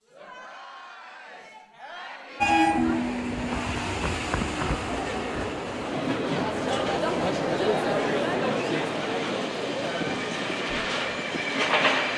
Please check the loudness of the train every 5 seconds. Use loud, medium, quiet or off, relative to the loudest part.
loud, medium, loud.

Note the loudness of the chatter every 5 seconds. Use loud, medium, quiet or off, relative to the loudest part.
quiet, loud, medium.